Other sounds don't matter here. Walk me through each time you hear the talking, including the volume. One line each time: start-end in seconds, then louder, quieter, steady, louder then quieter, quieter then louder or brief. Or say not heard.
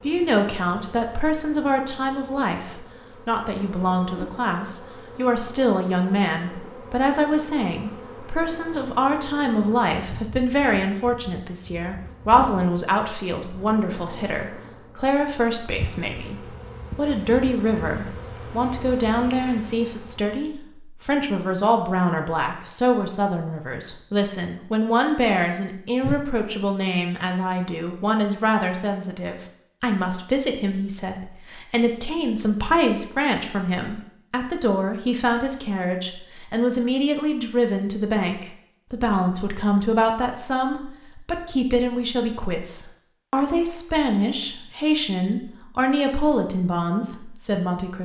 0.0-48.0 steady.